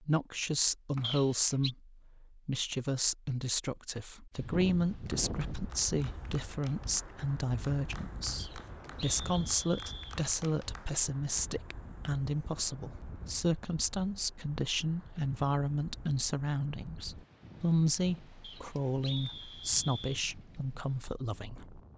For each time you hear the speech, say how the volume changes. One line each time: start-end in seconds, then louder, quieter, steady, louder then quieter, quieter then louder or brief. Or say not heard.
0.0-21.8 steady.